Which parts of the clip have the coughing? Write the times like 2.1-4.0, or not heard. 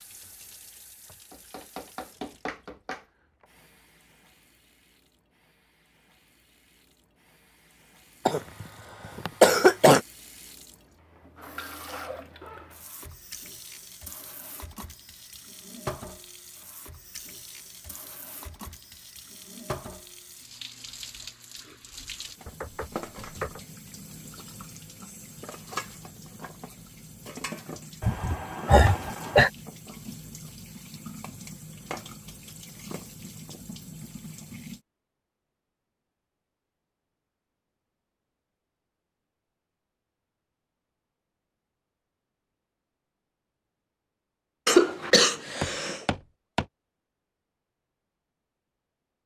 8.2-10.0, 28.0-29.5, 44.6-46.0.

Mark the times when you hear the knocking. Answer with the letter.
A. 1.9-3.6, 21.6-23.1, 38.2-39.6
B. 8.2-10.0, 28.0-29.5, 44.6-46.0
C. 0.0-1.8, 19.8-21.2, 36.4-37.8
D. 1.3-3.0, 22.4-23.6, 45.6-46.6
D.